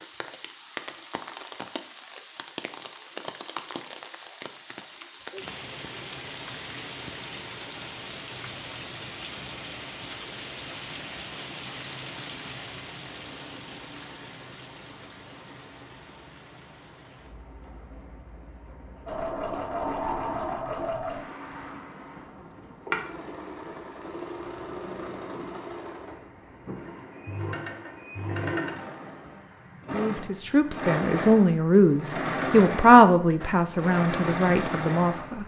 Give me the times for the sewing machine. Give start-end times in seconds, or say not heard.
19.1-35.4.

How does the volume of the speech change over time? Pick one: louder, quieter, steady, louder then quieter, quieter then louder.
louder then quieter.